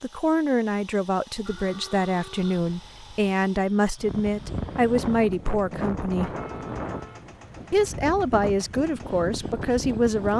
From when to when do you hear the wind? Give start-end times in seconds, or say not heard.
4.0-10.3.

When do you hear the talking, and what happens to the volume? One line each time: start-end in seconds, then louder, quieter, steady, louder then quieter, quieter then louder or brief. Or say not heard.
0.0-6.3 steady
7.7-10.3 brief.